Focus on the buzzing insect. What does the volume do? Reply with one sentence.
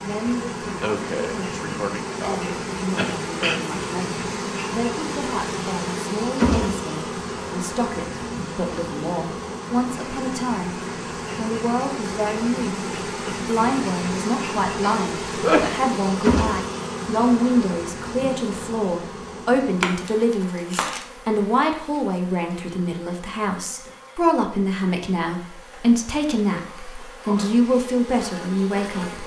The volume of the buzzing insect goes down.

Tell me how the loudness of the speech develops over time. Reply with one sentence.
The volume of the speech goes up.